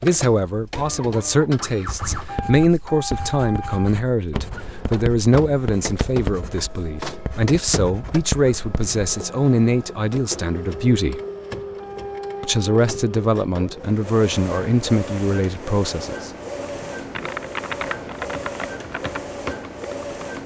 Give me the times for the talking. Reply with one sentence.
You can hear the talking from 0.0 to 11.2 s and from 12.4 to 16.3 s.